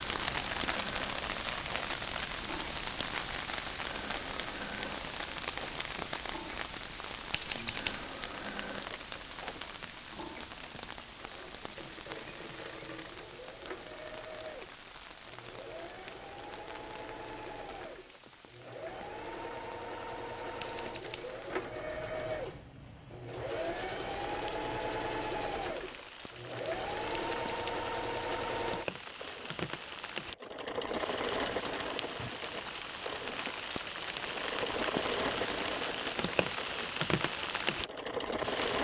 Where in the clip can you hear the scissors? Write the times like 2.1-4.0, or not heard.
7.3-8.1, 20.6-21.4, 27.1-27.9.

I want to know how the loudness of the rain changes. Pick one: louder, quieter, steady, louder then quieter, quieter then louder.
quieter then louder.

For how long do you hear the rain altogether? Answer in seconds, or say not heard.
39 s.